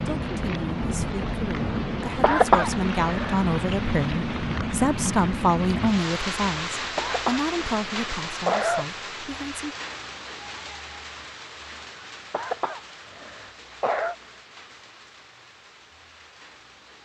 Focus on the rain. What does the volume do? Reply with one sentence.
The loudness of the rain goes down.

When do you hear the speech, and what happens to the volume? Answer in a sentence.
You can hear the speech from 0.1 to 9.8 s, getting louder then quieter.